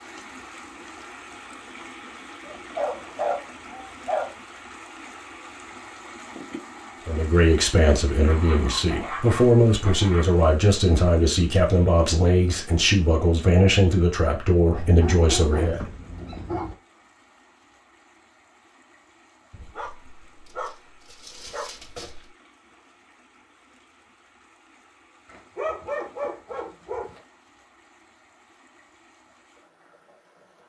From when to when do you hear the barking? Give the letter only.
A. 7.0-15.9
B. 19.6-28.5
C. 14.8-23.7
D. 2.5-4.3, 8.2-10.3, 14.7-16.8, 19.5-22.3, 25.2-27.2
D.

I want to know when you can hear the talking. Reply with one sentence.
The talking can be heard from 7.0 to 15.9 s.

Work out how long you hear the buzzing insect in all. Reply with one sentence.
The buzzing insect can't be heard in this clip.